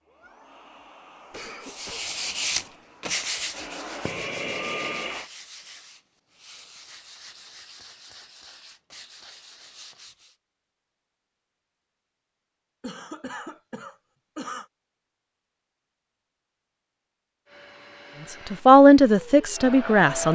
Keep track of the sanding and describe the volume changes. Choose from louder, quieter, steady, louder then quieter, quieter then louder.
quieter.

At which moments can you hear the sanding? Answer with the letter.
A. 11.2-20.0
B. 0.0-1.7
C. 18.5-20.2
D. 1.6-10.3
D.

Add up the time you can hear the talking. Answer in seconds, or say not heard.
2 s.